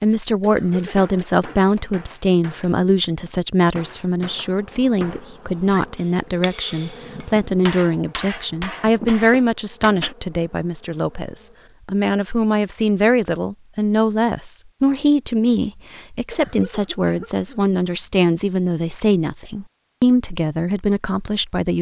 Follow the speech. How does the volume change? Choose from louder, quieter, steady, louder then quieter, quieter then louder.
steady.